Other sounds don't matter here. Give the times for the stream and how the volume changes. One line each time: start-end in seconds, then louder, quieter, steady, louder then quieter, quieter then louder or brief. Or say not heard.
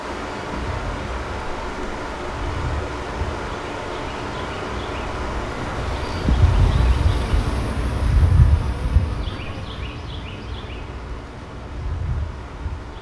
0.0-12.9 quieter.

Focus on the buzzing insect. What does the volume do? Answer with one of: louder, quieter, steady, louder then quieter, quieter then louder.
louder then quieter.